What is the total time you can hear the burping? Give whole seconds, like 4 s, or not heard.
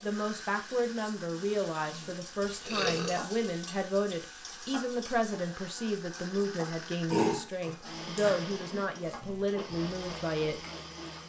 3 s.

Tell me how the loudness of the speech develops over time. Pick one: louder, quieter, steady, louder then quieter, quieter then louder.
steady.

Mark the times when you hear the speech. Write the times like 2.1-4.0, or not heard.
0.0-10.6.